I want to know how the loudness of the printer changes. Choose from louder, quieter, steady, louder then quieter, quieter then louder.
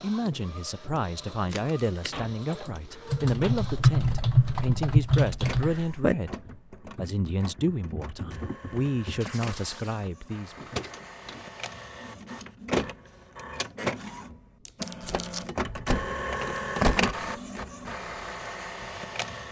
louder.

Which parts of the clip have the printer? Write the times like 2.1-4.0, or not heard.
0.0-19.4.